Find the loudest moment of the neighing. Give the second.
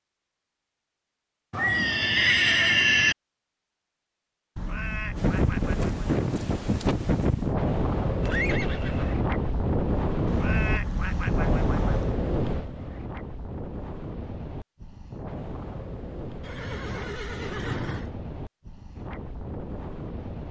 3 s.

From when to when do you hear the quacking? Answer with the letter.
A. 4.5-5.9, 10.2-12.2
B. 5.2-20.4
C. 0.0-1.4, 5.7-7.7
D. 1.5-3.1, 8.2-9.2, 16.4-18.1
A.